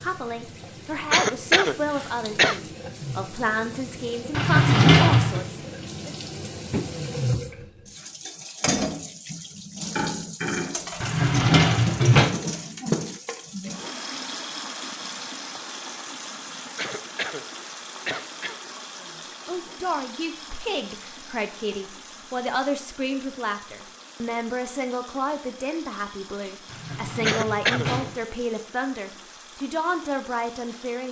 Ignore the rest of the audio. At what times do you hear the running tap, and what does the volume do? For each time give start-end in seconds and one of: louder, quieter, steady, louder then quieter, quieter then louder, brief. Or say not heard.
0.0-31.0 louder then quieter.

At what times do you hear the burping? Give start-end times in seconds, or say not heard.
not heard.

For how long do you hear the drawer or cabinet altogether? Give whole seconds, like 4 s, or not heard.
4 s.